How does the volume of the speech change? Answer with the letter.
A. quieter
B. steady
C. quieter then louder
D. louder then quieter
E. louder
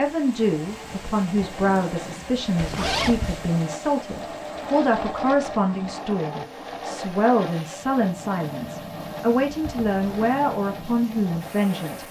B.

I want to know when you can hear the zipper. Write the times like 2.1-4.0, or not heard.
2.5-3.5, 9.6-10.3.